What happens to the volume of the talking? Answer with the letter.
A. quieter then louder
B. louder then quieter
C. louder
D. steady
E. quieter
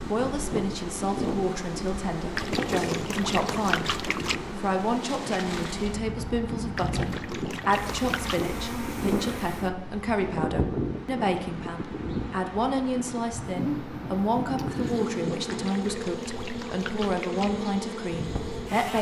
D.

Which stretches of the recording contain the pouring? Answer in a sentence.
You can hear the pouring from 2.4 to 4.4 s, from 6.8 to 8.6 s and from 15.4 to 17.5 s.